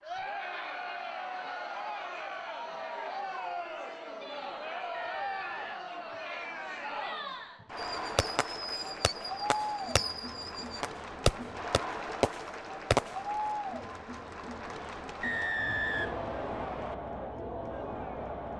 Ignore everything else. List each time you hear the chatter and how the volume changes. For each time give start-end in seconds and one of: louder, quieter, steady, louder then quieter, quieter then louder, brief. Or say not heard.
0.0-18.5 steady.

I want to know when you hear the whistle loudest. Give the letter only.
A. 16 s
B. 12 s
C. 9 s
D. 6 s
A.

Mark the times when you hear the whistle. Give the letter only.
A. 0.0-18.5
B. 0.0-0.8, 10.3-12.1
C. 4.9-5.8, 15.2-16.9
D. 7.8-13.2
C.